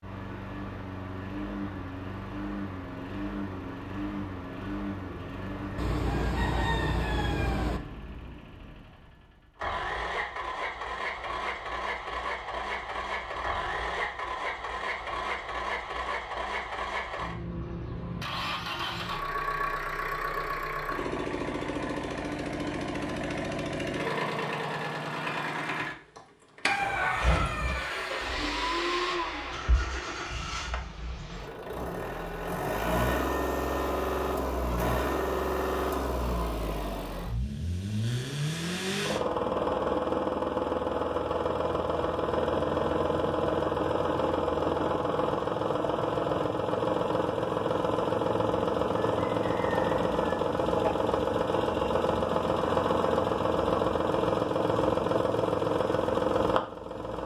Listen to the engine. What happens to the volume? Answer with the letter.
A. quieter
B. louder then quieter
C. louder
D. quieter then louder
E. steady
C.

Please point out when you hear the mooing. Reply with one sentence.
You can't hear the mooing here.